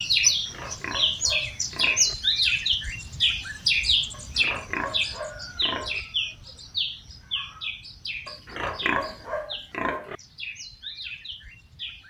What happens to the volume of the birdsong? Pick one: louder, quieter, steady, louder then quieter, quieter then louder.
quieter.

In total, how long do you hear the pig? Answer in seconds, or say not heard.
6 s.